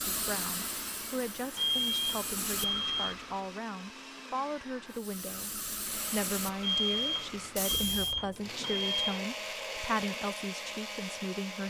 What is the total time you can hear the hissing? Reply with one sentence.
The hissing can be heard for 7 seconds in total.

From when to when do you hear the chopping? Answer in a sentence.
You can't hear the chopping here.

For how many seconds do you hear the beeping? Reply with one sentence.
The beeping can be heard for 4 seconds in total.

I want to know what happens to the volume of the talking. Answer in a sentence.
The loudness of the talking stays about the same.